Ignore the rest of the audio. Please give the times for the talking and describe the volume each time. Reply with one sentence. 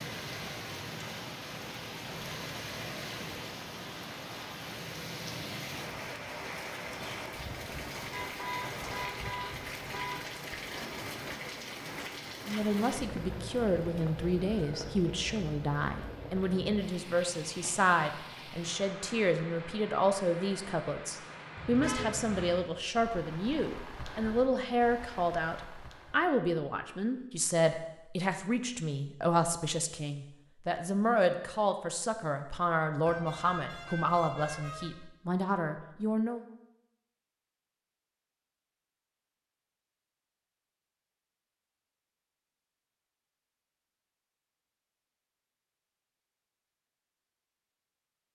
The talking can be heard from 12.4 to 36.5 s, at a steady volume.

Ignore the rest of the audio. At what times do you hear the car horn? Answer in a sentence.
The car horn can be heard from 8.1 to 10.3 s, from 21.6 to 22.6 s and from 33.0 to 34.9 s.